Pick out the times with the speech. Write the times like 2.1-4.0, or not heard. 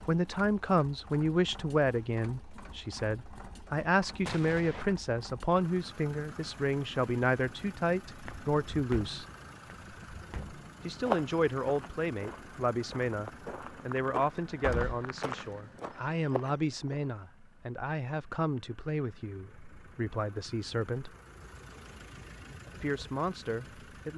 0.1-9.2, 10.8-21.1, 22.8-24.1.